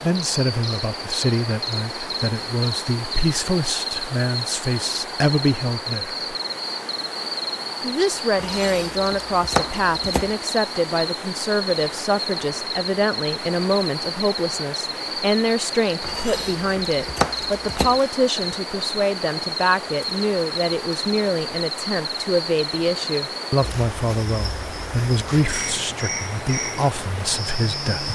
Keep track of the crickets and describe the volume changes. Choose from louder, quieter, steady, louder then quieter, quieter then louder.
steady.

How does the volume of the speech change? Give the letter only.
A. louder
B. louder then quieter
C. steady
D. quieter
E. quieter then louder
C.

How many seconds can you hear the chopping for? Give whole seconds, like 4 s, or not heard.
4 s.